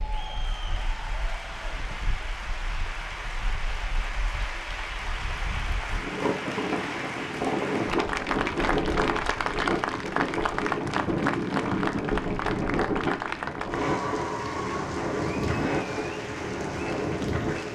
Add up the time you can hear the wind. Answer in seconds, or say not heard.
18 s.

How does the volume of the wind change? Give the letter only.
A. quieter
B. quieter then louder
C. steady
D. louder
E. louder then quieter
D.